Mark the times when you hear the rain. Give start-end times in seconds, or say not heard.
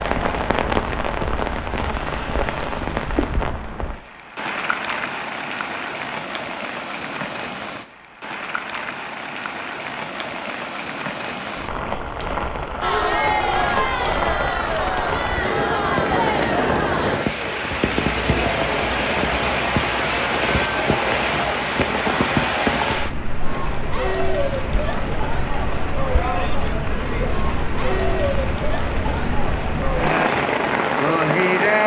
0.0-31.8.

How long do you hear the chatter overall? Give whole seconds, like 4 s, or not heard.
19 s.